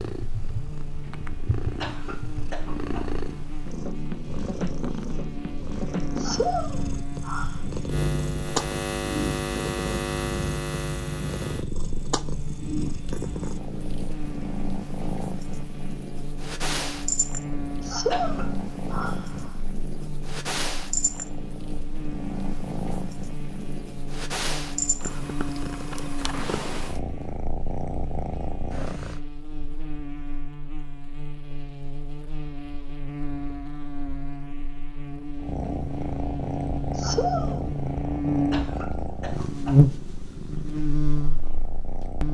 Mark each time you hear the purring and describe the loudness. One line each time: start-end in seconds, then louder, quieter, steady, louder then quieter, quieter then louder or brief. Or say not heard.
0.0-29.2 steady
35.4-42.2 quieter.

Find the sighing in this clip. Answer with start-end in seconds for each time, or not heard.
6.2-7.6, 17.9-19.4, 37.0-37.6.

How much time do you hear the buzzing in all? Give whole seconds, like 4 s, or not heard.
42 s.